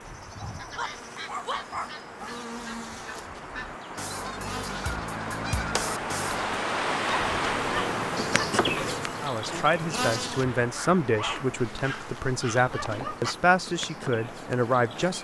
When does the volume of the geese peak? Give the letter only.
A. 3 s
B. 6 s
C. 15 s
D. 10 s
B.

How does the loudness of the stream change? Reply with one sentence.
The loudness of the stream goes up, then down.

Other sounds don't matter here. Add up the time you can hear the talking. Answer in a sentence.
You can hear the talking for 6 seconds altogether.